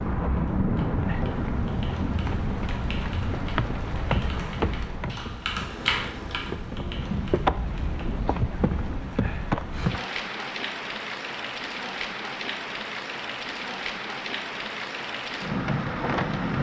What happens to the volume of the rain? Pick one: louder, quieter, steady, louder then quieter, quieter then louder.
steady.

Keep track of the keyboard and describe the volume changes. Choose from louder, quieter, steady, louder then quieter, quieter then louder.
louder then quieter.